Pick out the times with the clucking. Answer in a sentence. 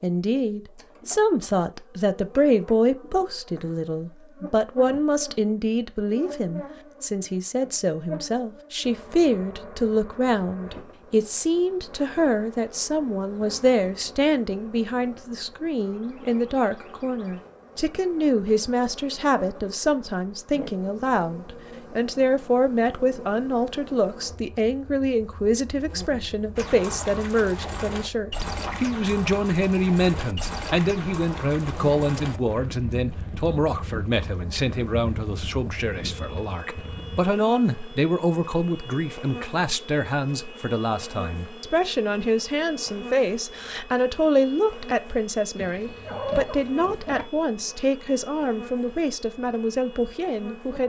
The clucking can be heard from 45.5 to 47.2 s.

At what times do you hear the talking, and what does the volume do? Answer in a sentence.
You can hear the talking from 0.0 to 50.8 s, at a steady volume.